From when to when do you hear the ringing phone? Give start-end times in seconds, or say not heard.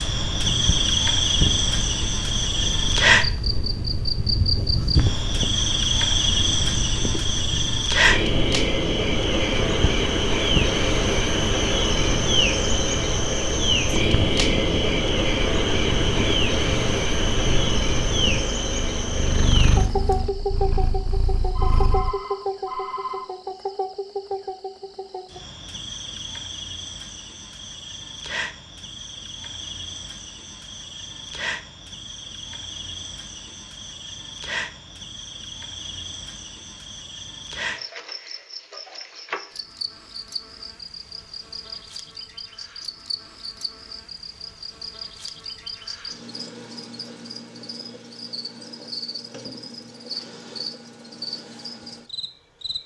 21.4-23.2.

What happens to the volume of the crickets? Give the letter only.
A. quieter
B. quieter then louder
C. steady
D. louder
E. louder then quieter
A.